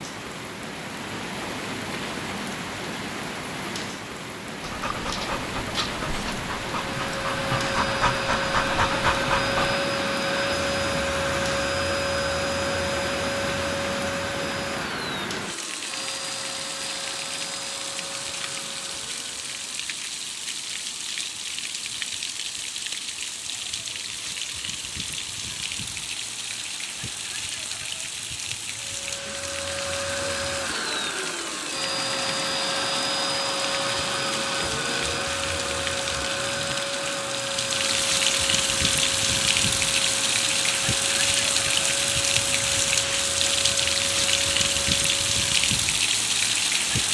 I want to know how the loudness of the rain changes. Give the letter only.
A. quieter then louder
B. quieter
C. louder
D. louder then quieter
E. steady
C.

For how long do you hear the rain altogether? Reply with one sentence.
You can hear the rain for 47 seconds altogether.